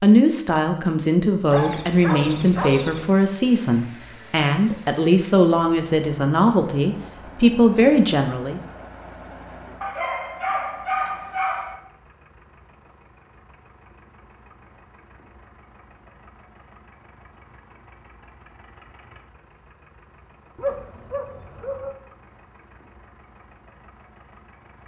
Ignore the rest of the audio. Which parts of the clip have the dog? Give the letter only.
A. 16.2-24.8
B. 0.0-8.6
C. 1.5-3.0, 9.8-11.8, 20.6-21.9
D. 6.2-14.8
C.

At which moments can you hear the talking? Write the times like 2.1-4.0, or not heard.
0.0-8.6.